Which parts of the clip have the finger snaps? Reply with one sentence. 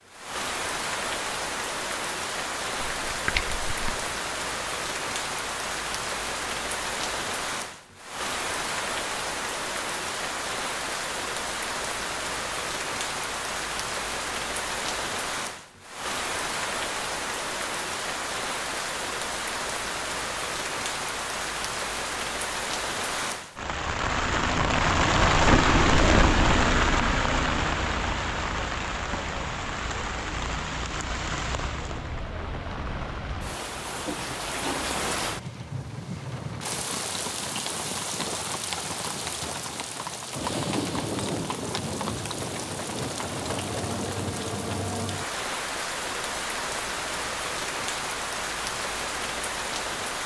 You can hear the finger snaps from 3.0 to 4.2 s.